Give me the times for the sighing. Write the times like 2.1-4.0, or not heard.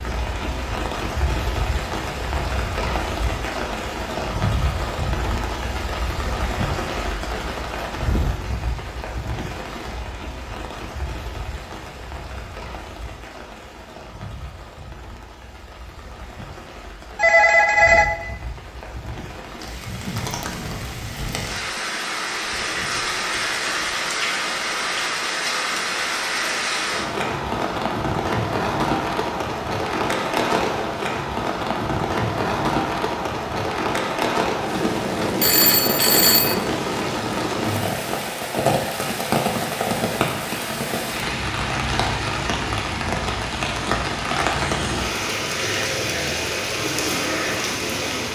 not heard.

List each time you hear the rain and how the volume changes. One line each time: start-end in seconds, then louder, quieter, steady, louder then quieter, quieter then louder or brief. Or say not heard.
0.0-48.3 quieter then louder.